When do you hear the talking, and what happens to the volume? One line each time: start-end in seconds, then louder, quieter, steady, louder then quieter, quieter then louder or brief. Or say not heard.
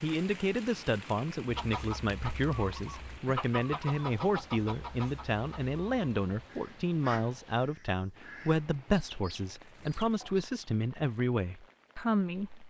0.0-12.6 steady.